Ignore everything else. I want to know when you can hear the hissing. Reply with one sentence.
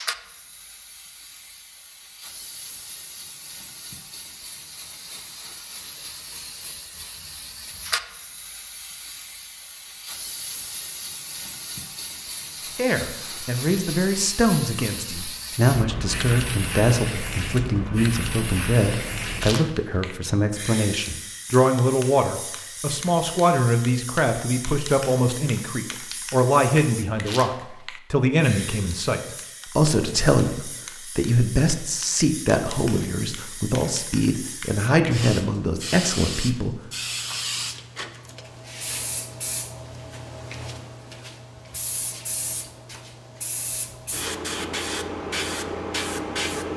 You can hear the hissing from 0.0 to 46.7 s.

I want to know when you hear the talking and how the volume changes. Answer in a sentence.
You can hear the talking from 12.8 to 36.8 s, at a steady volume.